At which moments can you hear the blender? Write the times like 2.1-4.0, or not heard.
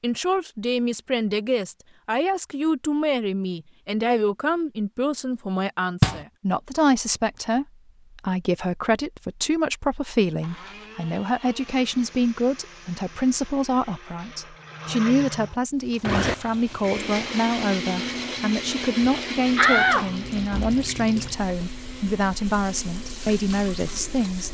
10.2-24.4.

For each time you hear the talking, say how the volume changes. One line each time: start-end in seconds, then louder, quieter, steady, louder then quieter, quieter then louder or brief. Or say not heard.
0.0-24.4 steady.